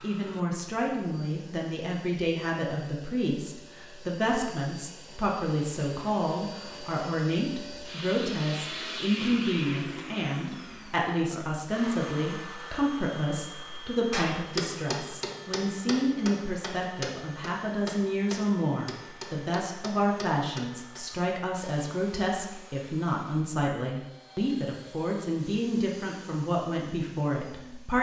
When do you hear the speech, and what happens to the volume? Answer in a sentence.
You can hear the speech from 0.0 to 27.9 s, at a steady volume.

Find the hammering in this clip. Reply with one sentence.
The hammering can be heard from 14.1 to 21.0 s.